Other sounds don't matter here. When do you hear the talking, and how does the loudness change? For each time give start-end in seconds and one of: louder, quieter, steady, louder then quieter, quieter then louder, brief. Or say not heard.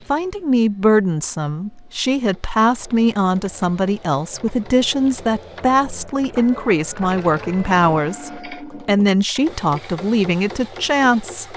0.1-11.5 steady.